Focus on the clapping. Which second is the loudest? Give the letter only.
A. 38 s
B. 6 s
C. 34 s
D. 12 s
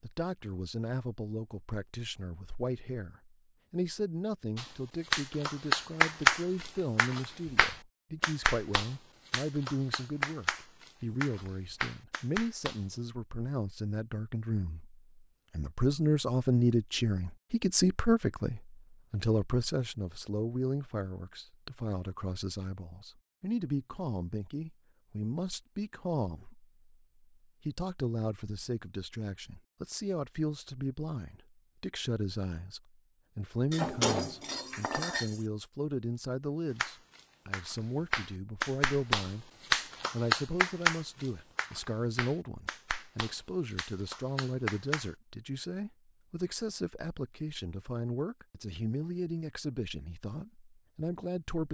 B.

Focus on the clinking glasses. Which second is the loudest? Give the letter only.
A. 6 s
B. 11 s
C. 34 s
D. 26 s
C.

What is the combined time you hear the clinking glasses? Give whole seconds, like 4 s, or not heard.
2 s.